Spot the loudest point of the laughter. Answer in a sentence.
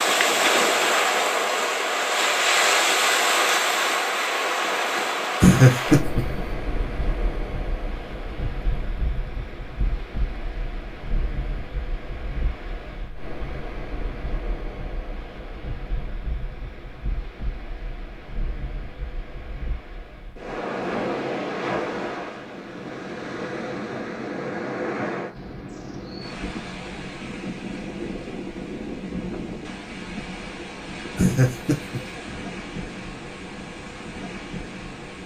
The volume of the laughter peaks at 6 seconds.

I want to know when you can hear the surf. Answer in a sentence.
The surf can be heard from 0.0 to 35.2 s.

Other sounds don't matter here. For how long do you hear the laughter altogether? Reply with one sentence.
The laughter can be heard for 2 seconds in total.